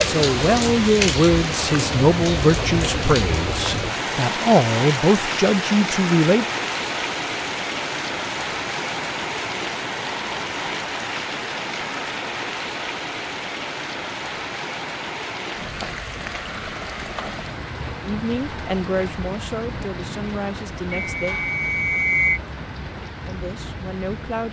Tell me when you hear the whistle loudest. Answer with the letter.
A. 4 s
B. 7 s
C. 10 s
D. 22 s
D.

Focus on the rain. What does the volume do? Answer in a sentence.
The loudness of the rain goes down.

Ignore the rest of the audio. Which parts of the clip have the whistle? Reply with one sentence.
You can hear the whistle from 20.9 to 22.4 s.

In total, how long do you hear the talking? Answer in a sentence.
You can hear the talking for 11 seconds altogether.